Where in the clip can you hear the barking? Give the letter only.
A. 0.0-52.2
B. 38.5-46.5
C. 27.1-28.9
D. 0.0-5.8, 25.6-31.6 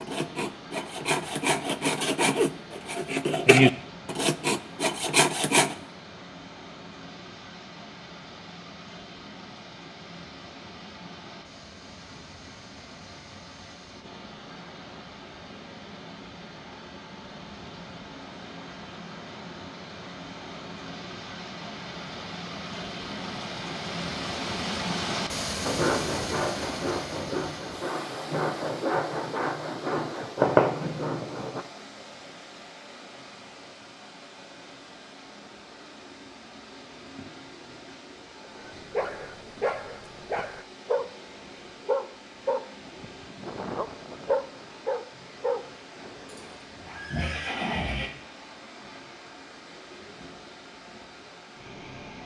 B.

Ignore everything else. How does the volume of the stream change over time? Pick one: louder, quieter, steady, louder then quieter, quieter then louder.
louder then quieter.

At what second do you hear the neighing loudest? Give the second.
48 s.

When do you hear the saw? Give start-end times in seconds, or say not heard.
0.0-5.8, 25.6-31.6.